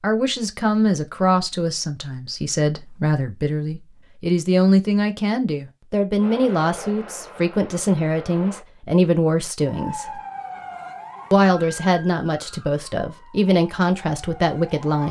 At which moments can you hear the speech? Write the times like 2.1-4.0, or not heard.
0.0-10.2, 11.3-15.0.